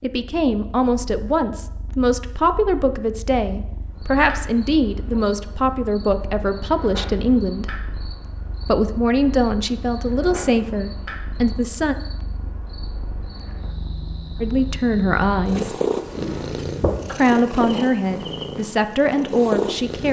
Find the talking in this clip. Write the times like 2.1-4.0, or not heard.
0.0-7.7, 8.7-11.9, 14.4-15.8, 17.1-20.0.